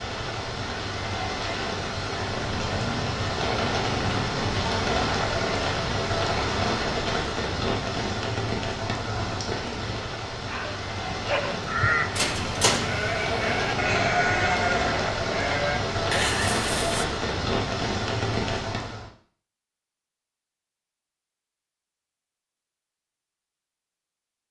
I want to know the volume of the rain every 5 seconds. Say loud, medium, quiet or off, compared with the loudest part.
loud, loud, loud, loud, off.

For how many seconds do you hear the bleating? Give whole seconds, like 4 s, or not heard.
6 s.